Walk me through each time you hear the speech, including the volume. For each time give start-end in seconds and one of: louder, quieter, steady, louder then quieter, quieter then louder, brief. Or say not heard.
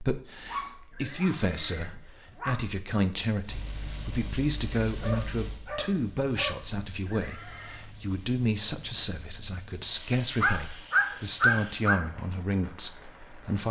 0.0-13.6 steady.